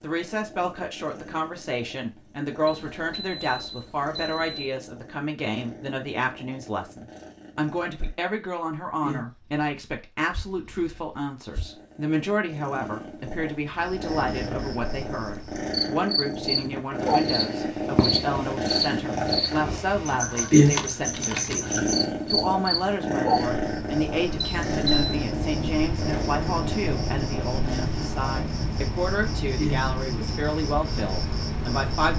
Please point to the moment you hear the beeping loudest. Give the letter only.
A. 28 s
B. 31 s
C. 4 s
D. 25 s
D.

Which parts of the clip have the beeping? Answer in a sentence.
The beeping can be heard from 2.6 to 4.7 s and from 24.4 to 25.1 s.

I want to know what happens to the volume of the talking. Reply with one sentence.
The loudness of the talking stays about the same.